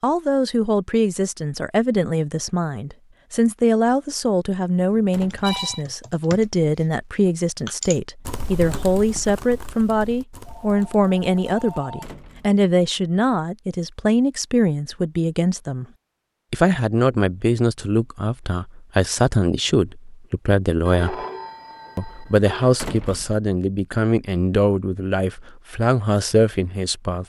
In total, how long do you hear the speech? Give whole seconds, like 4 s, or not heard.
26 s.